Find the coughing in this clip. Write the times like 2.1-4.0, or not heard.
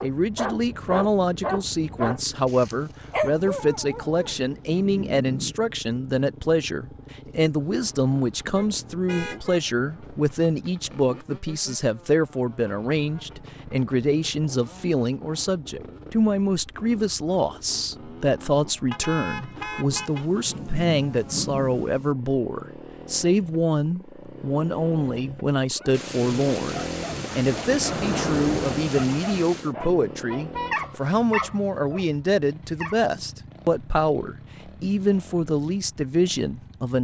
not heard.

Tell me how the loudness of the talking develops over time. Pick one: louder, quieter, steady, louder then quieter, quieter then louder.
steady.